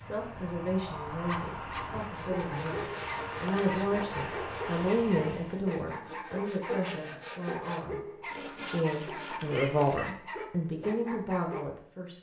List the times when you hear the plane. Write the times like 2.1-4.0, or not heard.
0.0-5.7.